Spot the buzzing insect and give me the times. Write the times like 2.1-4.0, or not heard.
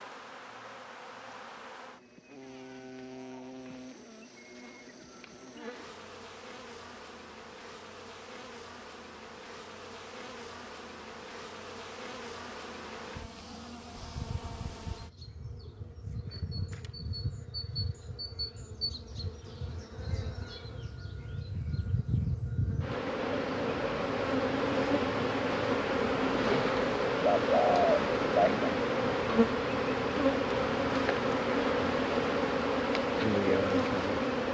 0.0-34.4.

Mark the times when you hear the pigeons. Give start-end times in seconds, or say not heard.
27.2-28.7.